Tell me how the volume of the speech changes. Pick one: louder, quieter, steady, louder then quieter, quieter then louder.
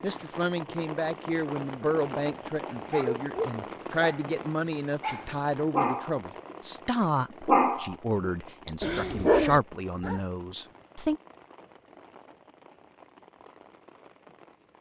steady.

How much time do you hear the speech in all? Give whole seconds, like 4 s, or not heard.
11 s.